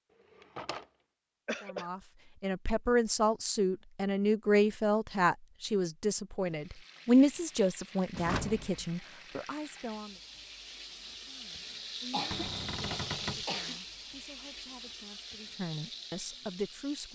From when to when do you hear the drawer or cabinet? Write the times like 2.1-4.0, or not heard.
0.3-0.8, 8.1-8.8, 12.3-13.4.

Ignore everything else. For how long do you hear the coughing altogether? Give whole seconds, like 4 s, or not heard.
2 s.